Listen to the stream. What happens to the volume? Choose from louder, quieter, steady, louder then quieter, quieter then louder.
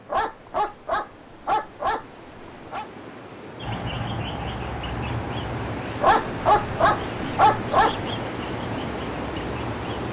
louder.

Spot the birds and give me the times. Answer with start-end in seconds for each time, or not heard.
3.6-10.0.